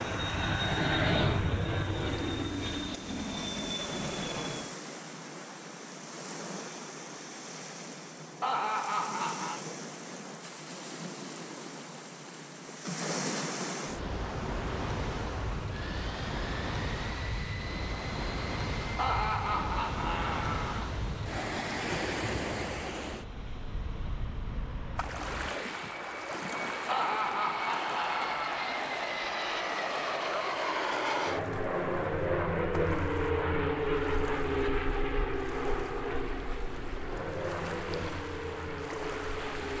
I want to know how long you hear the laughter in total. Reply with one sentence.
The laughter can be heard for 5 seconds in total.